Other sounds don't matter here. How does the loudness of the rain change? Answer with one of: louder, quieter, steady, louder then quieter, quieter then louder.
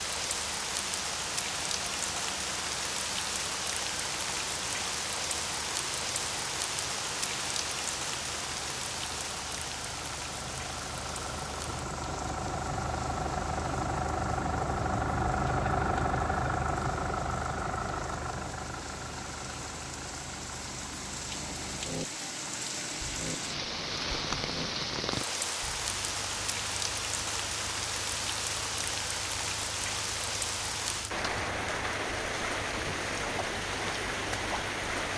quieter then louder.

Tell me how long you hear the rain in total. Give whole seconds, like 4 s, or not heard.
35 s.